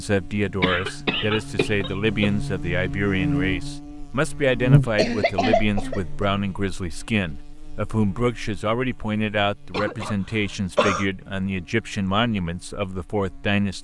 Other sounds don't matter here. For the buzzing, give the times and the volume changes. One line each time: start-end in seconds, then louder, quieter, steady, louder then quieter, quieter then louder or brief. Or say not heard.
0.0-13.8 louder then quieter.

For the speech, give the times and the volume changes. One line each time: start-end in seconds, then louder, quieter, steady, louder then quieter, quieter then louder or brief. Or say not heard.
0.0-13.8 steady.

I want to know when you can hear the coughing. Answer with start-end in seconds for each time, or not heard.
0.6-2.4, 4.8-6.2, 9.7-11.1.